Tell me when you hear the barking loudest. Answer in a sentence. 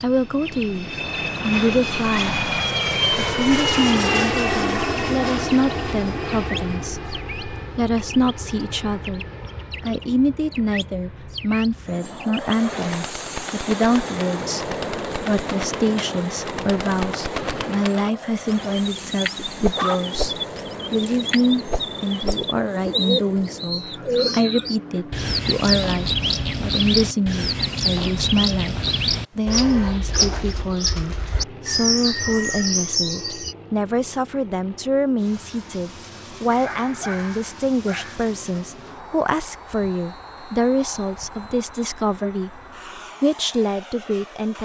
The volume of the barking peaks at 20 seconds.